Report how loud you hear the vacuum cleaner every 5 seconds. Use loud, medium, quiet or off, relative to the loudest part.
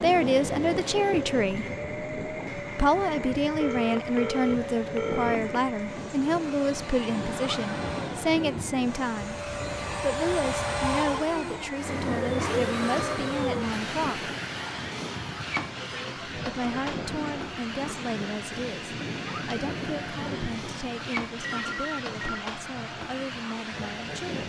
medium, medium, loud, medium, medium.